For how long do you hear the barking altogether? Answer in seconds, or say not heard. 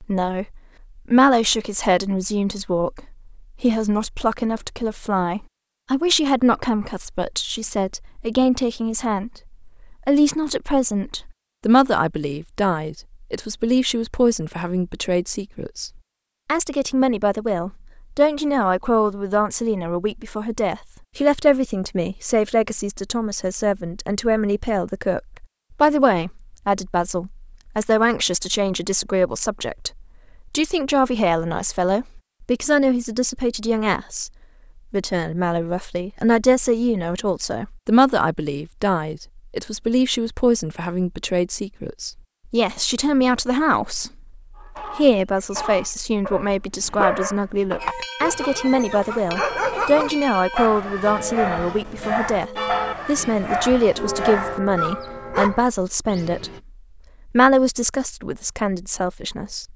11 s.